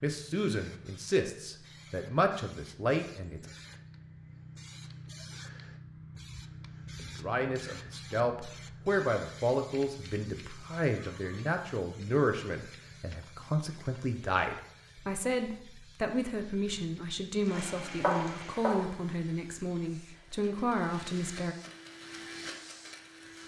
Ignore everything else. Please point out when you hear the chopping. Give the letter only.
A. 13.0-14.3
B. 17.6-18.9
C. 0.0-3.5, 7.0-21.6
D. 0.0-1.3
B.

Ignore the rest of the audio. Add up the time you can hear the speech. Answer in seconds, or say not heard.
18 s.